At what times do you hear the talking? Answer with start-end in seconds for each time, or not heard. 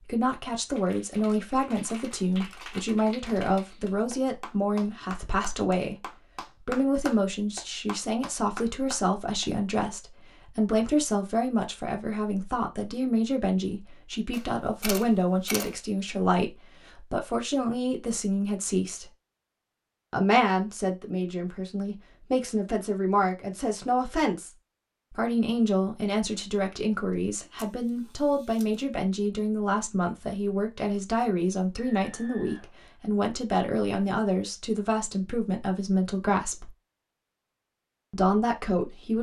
0.1-19.1, 20.1-24.5, 25.1-36.7, 38.1-39.1.